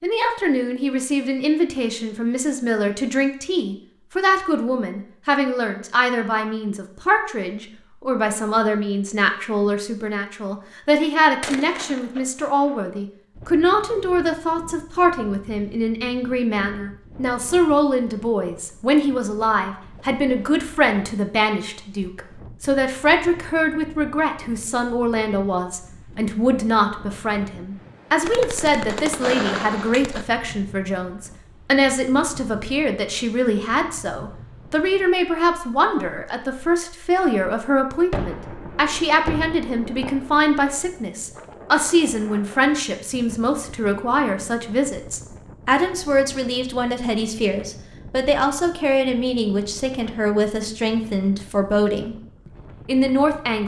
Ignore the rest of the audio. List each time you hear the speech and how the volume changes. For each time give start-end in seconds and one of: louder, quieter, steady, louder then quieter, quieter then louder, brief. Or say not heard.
0.0-52.1 steady
52.9-53.6 brief.